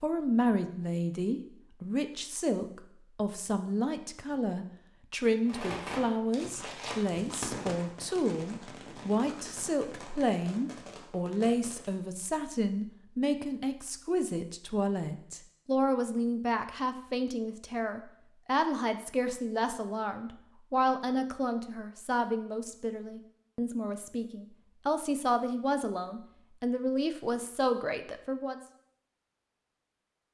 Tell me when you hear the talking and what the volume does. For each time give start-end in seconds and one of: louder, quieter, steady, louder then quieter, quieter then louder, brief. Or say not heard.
0.0-28.6 steady.